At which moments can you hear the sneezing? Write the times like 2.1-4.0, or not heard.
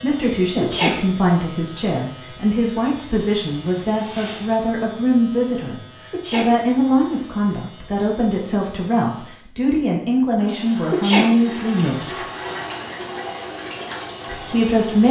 0.1-1.0, 5.6-6.5, 10.4-11.3.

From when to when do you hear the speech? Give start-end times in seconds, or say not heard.
0.0-12.2, 14.2-15.0.